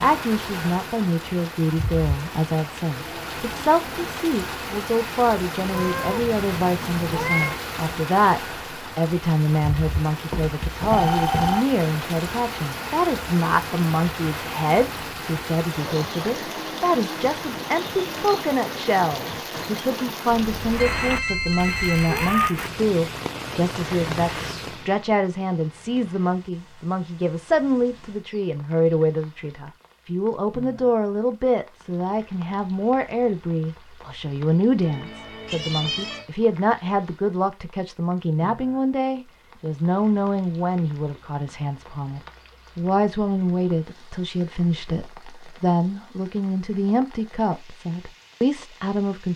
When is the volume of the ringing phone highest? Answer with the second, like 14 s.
11 s.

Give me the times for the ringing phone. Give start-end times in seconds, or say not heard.
10.3-11.7, 20.3-22.3, 34.8-36.2.